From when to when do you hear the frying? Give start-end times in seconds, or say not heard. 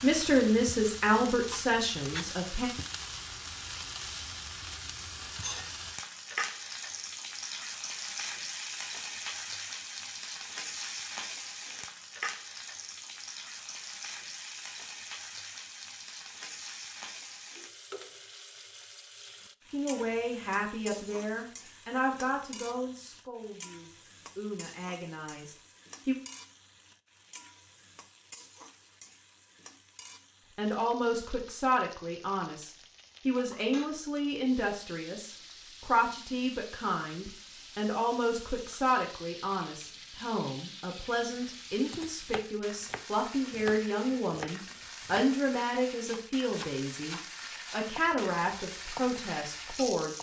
0.0-50.1.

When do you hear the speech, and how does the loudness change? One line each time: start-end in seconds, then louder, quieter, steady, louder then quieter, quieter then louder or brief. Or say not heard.
0.0-2.7 brief
19.7-26.1 quieter
30.6-50.1 steady.